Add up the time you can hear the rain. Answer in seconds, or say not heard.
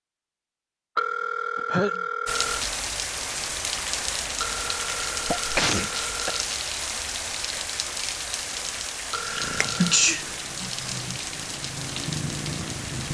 11 s.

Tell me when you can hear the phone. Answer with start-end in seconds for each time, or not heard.
0.9-2.6, 4.4-6.5, 9.1-10.1.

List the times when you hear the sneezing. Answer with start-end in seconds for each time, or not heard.
1.6-2.0, 5.1-6.3, 9.2-11.2.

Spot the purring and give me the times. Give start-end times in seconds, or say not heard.
9.3-13.0.